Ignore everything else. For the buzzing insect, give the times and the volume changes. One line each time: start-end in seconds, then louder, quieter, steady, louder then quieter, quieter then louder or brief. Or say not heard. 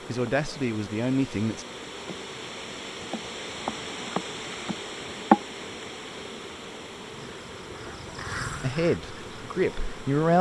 0.0-10.3 louder then quieter.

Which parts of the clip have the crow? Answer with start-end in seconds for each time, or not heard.
7.0-10.2.